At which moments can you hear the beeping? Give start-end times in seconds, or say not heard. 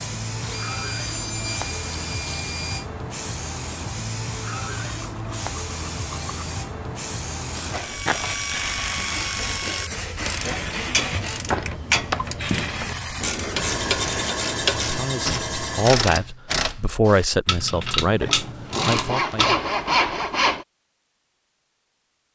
not heard.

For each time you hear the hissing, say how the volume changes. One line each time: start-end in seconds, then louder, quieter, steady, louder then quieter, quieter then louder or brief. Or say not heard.
0.0-14.2 steady.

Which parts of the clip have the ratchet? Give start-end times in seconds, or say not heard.
7.5-19.6.